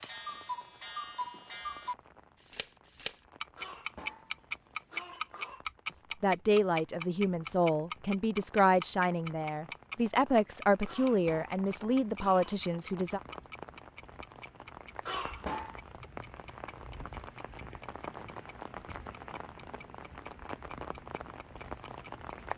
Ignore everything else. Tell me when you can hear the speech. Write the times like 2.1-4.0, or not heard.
6.2-13.2.